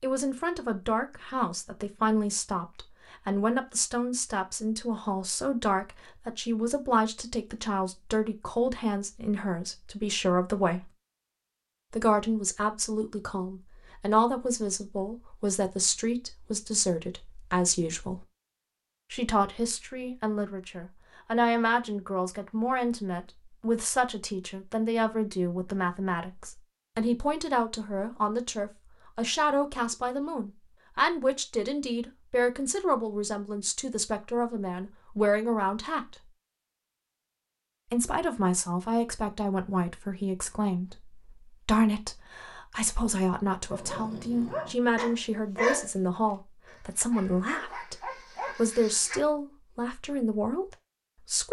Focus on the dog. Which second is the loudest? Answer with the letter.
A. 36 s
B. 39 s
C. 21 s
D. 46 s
D.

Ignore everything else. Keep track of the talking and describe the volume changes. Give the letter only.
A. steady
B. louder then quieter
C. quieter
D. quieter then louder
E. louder
A.